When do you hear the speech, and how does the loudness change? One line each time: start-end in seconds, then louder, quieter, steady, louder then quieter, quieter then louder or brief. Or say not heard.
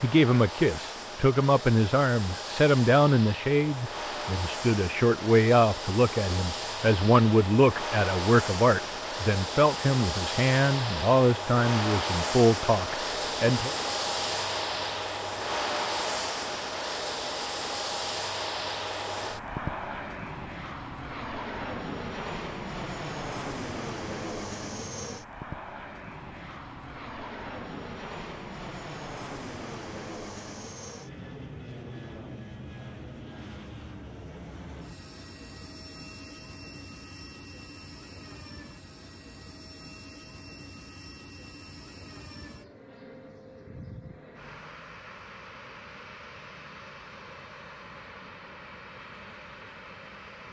0.0-13.8 steady.